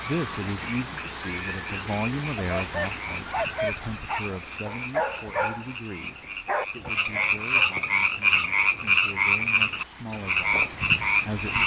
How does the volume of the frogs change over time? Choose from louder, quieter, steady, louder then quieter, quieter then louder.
louder.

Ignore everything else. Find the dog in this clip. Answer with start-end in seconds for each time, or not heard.
2.4-7.8.